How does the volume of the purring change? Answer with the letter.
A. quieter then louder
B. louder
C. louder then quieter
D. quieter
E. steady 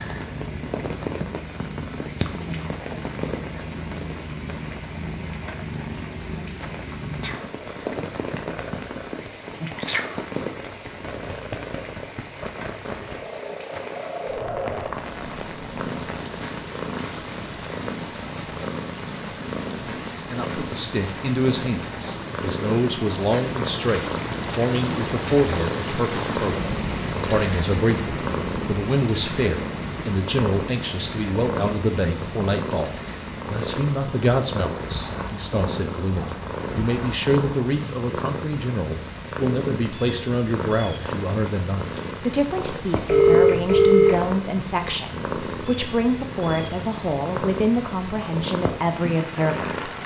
E.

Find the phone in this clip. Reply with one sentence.
The phone can be heard from 43.0 to 44.2 s.